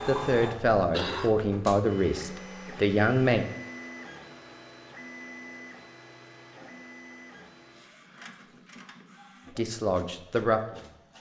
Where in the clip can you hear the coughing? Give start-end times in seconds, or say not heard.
0.8-1.4.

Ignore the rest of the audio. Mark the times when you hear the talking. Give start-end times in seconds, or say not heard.
0.1-3.5, 9.6-11.0.